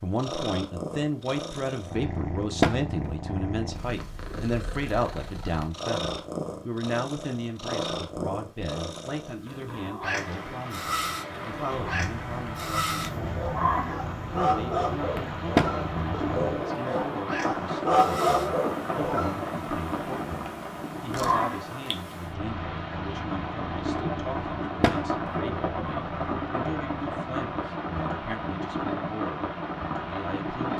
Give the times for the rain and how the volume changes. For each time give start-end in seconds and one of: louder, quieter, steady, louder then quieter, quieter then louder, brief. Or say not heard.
10.1-30.7 steady.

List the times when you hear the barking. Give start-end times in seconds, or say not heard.
12.9-19.4.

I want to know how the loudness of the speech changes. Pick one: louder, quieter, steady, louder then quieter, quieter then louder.
quieter.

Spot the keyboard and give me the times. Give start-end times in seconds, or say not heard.
not heard.